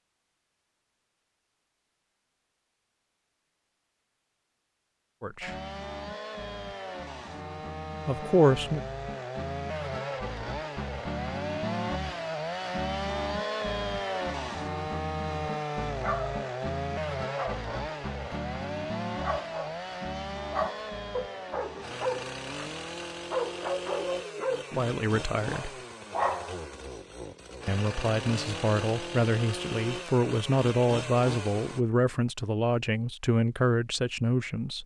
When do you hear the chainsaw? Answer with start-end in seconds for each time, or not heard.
5.4-31.8.